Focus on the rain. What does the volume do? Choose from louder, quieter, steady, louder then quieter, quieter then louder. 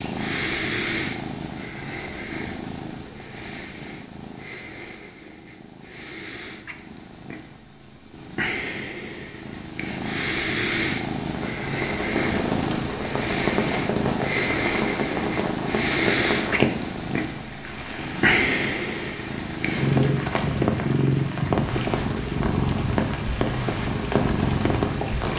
quieter then louder.